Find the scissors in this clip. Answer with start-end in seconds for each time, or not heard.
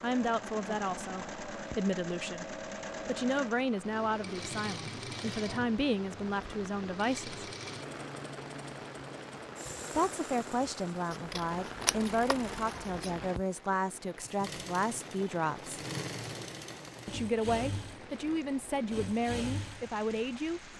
11.1-13.3.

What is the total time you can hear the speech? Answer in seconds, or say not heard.
17 s.